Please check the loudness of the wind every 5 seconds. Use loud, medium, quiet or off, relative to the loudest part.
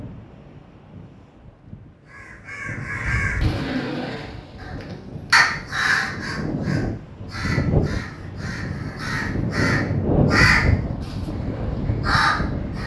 quiet, loud, loud.